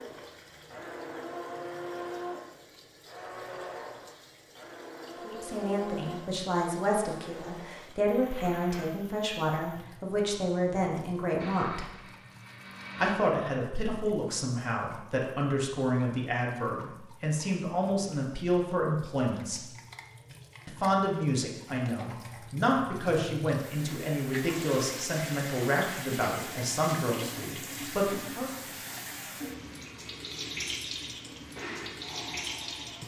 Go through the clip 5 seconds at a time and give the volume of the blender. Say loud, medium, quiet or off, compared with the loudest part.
loud, loud, loud, off, off, off, loud.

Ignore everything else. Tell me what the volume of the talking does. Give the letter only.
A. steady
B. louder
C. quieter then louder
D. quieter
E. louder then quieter
A.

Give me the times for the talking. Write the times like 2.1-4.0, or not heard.
5.2-11.9, 12.9-19.6, 20.6-28.6.